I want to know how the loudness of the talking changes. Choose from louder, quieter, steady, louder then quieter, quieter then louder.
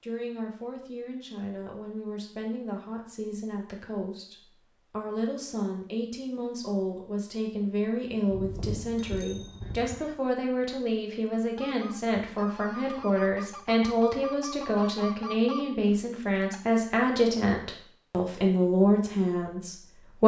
louder.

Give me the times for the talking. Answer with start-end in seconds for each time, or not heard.
0.0-20.2.